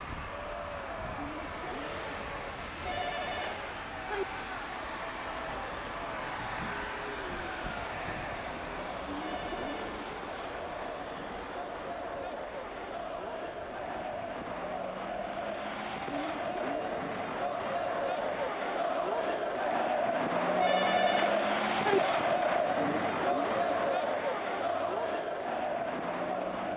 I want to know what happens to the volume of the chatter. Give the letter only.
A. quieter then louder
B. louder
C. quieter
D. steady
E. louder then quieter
B.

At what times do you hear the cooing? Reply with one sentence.
The cooing can be heard from 1.1 to 2.3 s, from 9.1 to 10.2 s, from 16.1 to 17.2 s and from 22.8 to 23.9 s.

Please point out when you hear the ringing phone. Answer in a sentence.
You can hear the ringing phone from 2.9 to 4.2 s, from 9.2 to 9.8 s and from 20.6 to 22.0 s.